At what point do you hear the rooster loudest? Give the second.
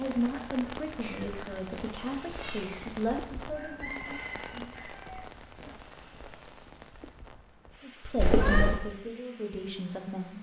4 s.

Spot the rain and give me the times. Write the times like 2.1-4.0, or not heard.
0.0-10.3.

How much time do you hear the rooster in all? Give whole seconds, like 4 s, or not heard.
2 s.